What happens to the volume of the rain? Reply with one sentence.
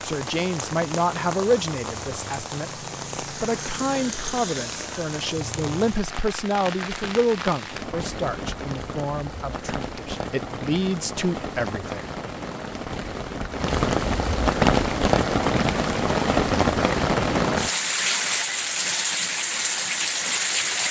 The loudness of the rain goes up.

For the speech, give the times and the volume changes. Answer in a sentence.
The speech can be heard from 0.0 to 12.1 s, at a steady volume.